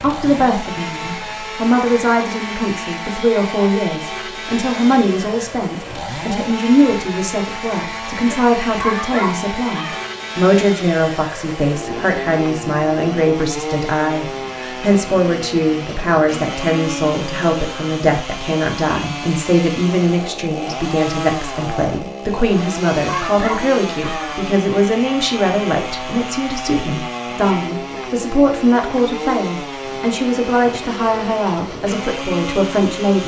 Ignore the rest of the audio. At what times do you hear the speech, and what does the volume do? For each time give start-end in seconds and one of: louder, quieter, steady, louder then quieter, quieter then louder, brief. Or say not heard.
0.0-33.2 steady.